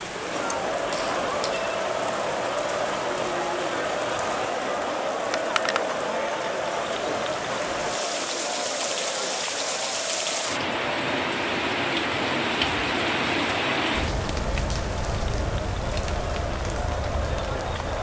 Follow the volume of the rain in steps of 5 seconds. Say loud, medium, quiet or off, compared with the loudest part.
medium, medium, loud, medium.